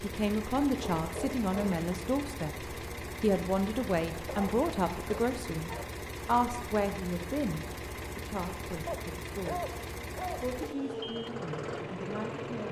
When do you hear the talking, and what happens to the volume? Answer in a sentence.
The talking can be heard from 0.0 to 9.7 s, getting quieter; and briefly from 10.3 to 12.6 s.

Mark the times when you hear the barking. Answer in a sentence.
The barking can be heard from 0.8 to 1.9 s, from 4.2 to 5.9 s and from 8.8 to 10.4 s.